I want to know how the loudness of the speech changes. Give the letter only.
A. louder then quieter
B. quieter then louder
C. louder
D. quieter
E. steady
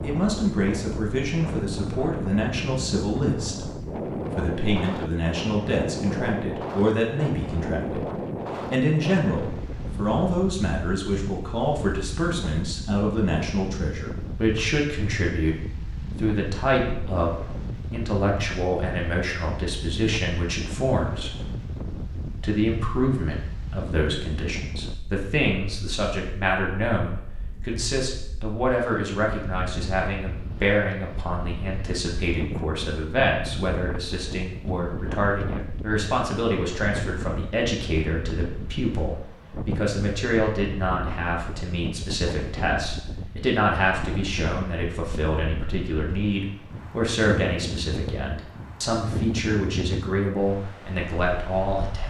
E.